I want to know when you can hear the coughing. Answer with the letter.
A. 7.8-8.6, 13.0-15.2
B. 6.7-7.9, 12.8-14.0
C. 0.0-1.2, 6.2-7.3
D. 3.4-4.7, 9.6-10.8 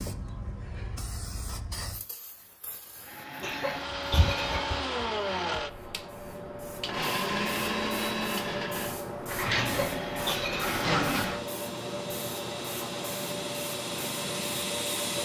D.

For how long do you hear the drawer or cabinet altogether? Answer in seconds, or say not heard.
3 s.